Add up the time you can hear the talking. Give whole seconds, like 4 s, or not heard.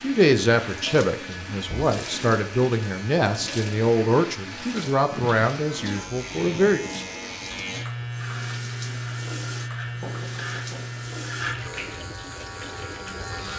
7 s.